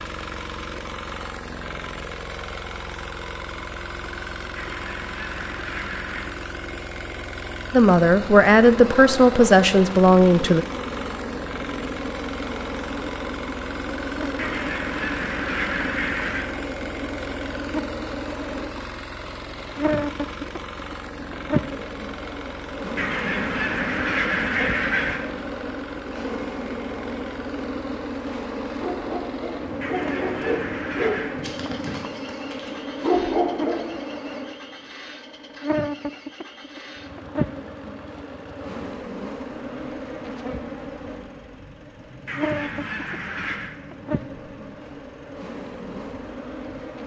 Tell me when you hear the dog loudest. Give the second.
33 s.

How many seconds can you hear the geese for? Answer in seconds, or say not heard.
9 s.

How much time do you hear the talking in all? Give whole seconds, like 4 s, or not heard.
3 s.